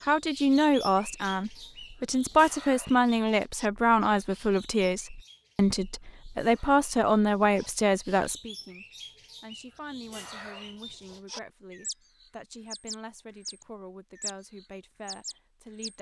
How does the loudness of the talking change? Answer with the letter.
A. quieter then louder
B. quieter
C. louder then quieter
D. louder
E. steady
B.